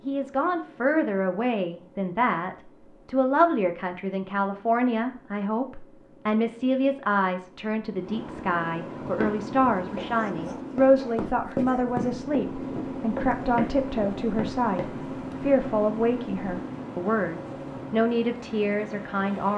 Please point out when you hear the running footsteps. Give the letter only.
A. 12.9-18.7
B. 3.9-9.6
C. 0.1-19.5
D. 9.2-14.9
D.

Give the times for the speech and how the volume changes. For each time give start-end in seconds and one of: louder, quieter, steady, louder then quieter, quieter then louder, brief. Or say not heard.
0.1-19.5 steady.